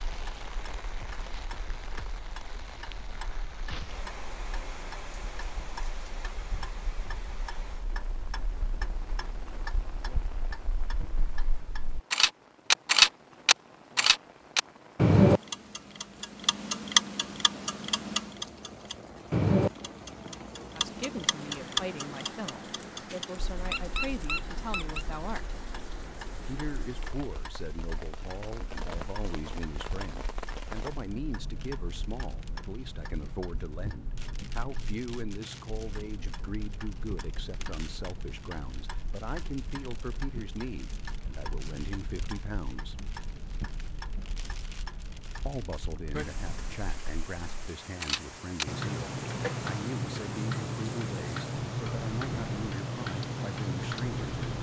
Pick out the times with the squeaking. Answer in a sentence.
The squeaking can be heard from 23.6 to 25.1 s.